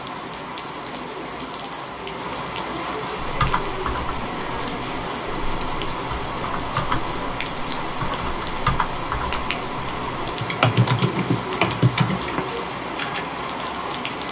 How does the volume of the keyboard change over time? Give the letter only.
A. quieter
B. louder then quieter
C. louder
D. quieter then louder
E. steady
C.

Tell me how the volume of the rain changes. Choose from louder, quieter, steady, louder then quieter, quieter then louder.
steady.